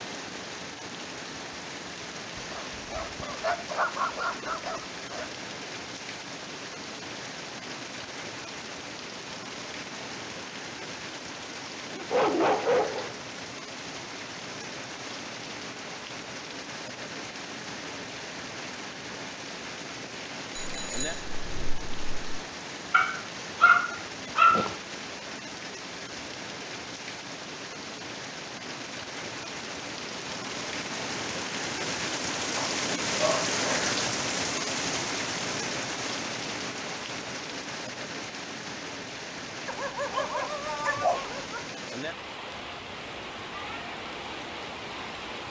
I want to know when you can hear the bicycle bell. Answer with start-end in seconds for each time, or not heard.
20.6-22.4.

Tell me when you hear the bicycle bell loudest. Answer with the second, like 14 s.
21 s.